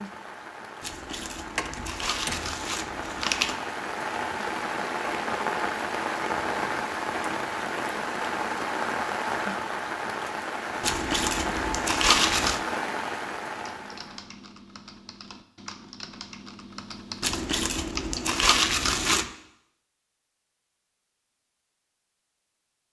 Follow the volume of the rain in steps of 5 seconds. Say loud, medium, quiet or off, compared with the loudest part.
medium, loud, loud, off, off.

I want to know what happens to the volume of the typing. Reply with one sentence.
The loudness of the typing goes up.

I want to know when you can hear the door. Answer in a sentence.
You can hear the door from 1.6 to 2.6 s.